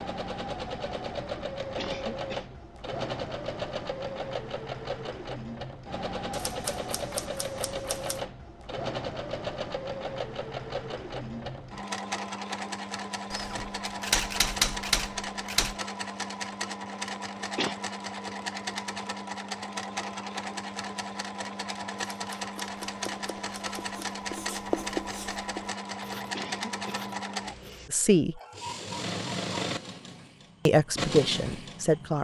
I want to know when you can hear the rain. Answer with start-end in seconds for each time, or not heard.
not heard.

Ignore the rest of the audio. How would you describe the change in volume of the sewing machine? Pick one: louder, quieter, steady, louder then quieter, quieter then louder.
steady.